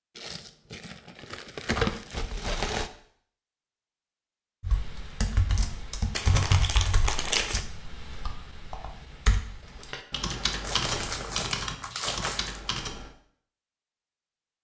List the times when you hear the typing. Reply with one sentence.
You can hear the typing from 4.6 to 13.2 s.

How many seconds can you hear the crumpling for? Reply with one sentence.
The crumpling can be heard for 6 seconds in total.